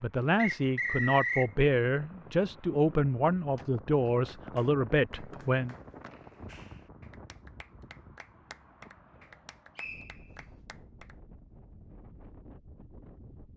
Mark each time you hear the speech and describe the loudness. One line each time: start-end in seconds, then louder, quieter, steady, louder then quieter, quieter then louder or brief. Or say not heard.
0.0-5.8 steady.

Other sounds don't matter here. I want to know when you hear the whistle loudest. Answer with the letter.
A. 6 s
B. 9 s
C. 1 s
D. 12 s
C.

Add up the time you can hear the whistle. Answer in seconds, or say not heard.
3 s.